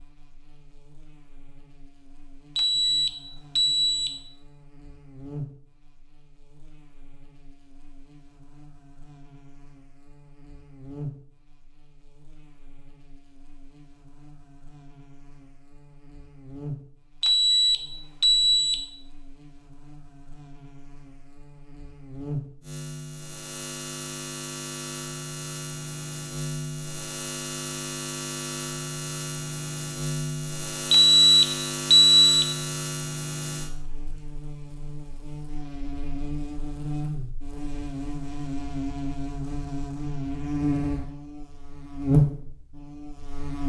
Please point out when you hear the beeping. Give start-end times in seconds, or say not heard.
2.5-4.2, 17.2-18.8, 30.9-32.5.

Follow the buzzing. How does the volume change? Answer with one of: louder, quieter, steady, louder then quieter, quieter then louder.
louder.